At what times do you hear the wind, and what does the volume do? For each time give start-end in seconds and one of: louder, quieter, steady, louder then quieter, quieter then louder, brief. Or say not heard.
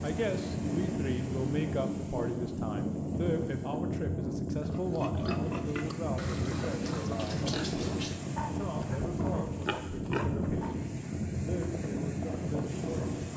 0.0-13.3 steady.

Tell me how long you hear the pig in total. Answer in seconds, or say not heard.
6 s.